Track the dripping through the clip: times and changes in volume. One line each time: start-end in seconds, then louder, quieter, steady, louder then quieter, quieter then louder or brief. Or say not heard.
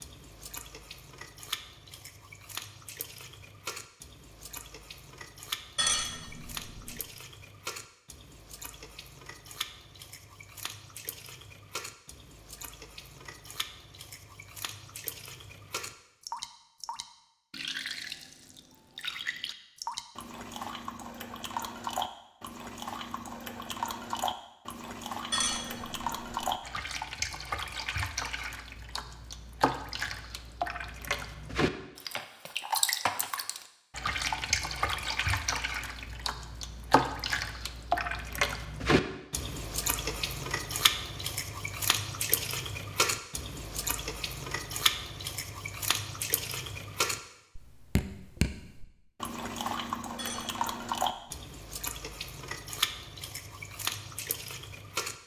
0.0-55.1 louder.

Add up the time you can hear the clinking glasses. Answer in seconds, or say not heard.
4 s.